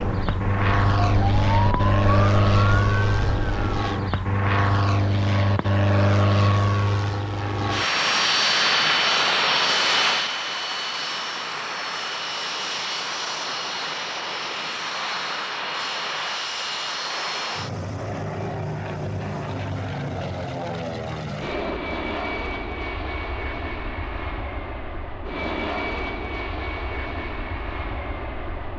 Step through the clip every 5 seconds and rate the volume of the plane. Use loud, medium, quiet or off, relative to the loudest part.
loud, loud, medium, medium, medium, medium.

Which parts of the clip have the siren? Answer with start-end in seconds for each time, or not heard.
0.1-4.0.